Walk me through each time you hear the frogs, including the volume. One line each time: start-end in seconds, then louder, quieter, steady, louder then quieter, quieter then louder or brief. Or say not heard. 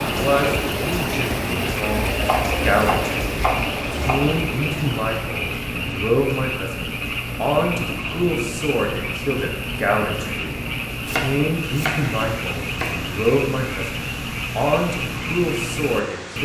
0.0-16.4 steady.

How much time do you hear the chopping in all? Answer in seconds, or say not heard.
4 s.